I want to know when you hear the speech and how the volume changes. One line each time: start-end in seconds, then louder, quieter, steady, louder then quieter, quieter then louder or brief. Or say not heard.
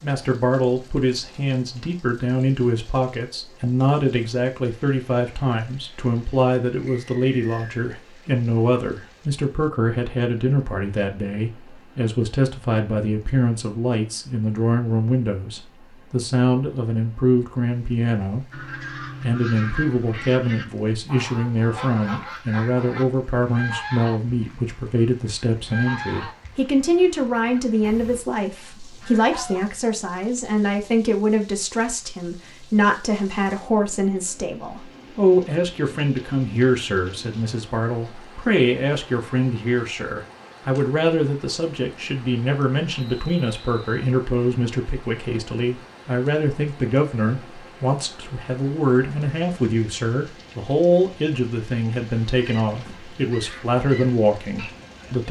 0.0-55.2 steady.